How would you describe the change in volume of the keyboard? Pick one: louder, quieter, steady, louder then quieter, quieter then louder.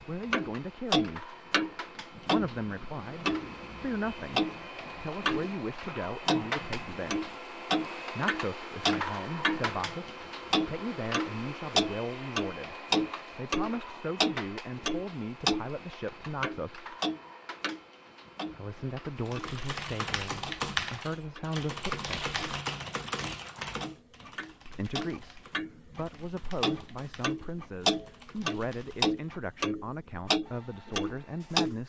quieter.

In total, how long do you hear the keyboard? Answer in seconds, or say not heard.
10 s.